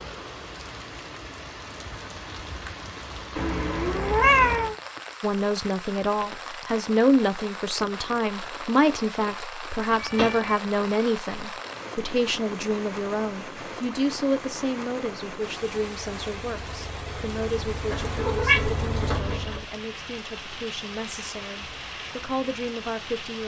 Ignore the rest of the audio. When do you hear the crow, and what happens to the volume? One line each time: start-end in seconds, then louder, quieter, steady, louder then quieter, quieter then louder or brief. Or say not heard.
not heard.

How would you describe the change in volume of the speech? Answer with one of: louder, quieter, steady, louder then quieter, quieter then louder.
quieter.